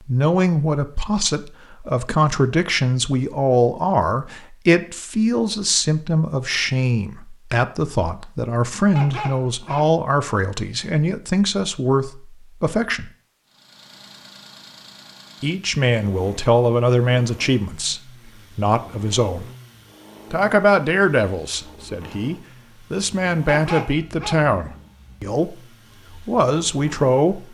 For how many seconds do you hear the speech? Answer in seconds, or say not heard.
24 s.